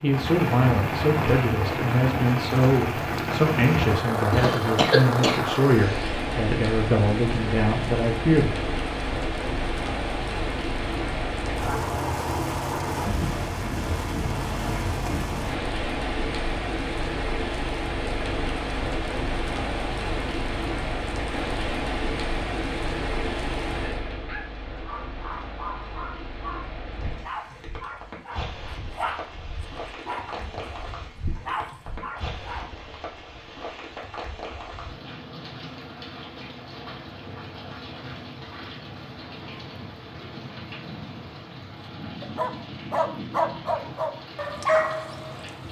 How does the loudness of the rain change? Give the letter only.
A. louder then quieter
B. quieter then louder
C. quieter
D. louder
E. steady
C.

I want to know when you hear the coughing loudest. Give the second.
5 s.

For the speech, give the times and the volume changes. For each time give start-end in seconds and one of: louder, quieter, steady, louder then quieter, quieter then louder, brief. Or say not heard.
0.0-8.5 steady.